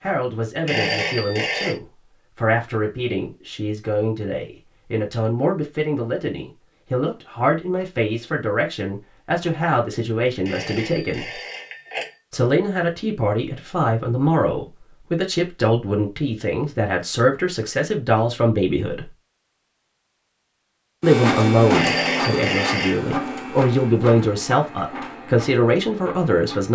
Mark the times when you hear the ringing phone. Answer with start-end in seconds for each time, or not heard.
0.7-1.8, 10.4-12.2, 21.7-23.0.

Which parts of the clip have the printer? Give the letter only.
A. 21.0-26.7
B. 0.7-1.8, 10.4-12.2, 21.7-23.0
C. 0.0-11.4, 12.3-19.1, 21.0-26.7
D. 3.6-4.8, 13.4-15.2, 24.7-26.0
A.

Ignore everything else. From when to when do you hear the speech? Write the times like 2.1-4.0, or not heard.
0.0-11.4, 12.3-19.1, 21.0-26.7.